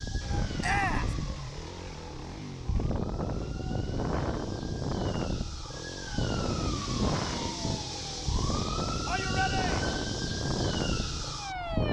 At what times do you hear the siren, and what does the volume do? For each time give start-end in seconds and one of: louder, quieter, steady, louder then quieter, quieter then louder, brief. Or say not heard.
0.0-11.8 louder.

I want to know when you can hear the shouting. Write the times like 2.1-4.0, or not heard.
0.6-1.1, 9.1-10.0.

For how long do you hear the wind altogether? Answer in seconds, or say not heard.
12 s.